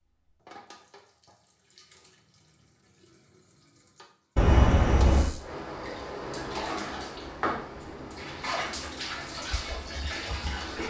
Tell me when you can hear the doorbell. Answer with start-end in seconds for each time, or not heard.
4.3-5.3.